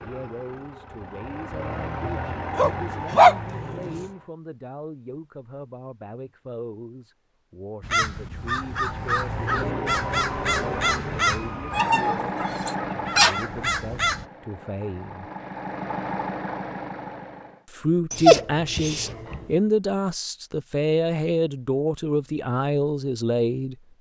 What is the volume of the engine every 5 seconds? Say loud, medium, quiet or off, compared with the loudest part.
loud, loud, loud, loud, off.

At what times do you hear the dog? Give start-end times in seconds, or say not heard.
2.5-4.0, 11.7-13.3, 18.1-19.4.